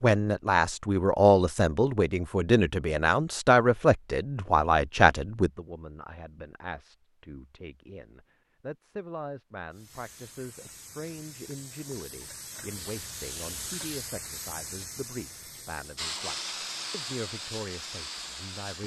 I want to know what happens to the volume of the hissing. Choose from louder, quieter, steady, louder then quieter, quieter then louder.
louder.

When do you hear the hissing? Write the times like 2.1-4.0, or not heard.
9.7-18.8.